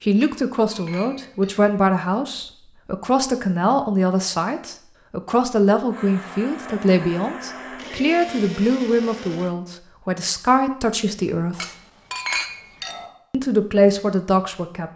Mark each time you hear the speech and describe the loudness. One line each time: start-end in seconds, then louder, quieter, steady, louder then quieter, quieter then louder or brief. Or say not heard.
0.0-11.7 steady
13.3-14.9 brief.